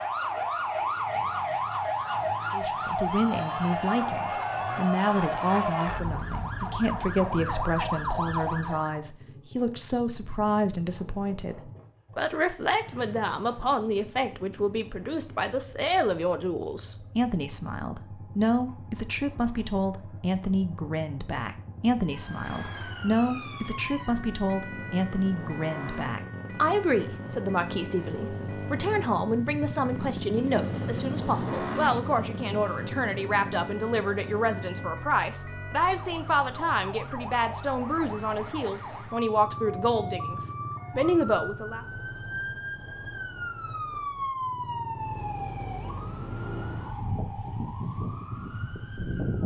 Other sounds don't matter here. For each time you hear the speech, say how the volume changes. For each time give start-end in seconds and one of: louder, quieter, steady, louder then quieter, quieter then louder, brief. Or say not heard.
2.5-41.9 steady.